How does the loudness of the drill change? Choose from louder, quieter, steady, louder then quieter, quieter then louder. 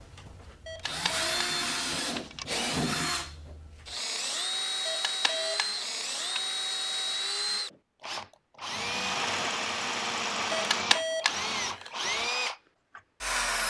steady.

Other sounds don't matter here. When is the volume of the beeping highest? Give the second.
11 s.